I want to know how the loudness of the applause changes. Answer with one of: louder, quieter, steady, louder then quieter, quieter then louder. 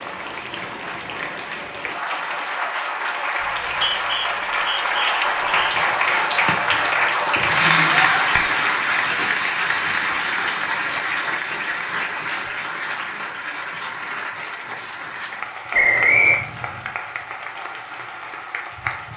louder then quieter.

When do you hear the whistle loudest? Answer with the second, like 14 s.
16 s.